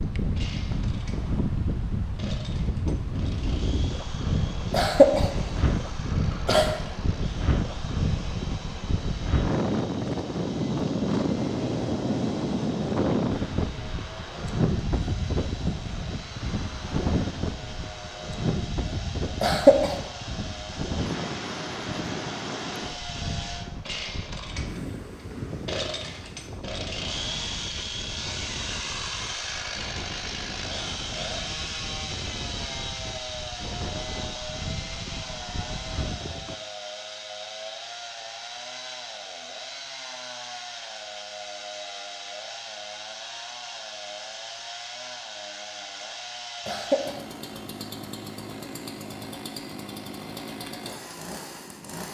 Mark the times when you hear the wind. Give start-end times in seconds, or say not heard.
0.0-36.5.